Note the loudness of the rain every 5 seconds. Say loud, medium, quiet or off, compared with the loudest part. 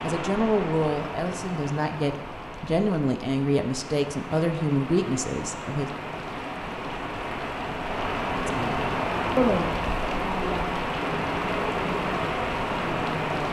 medium, loud, loud.